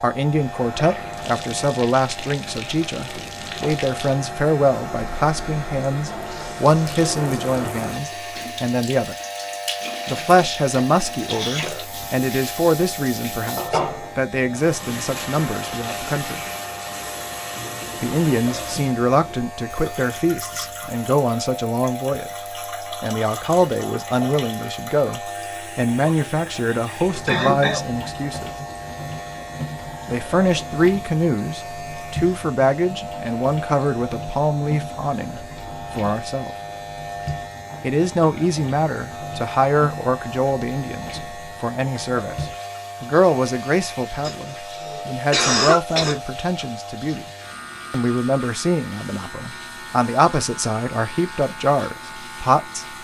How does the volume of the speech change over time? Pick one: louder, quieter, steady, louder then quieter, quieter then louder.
steady.